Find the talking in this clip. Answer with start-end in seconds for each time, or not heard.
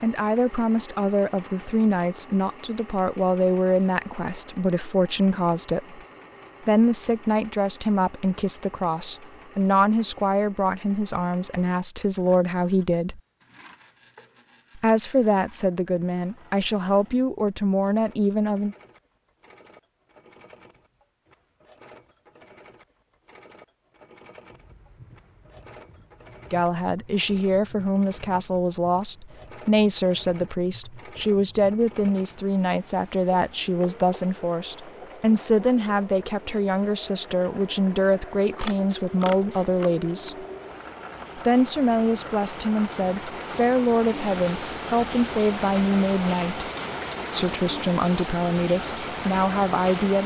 0.0-6.0, 6.7-13.2, 14.8-18.8, 26.5-40.5, 41.4-46.6, 47.3-50.2.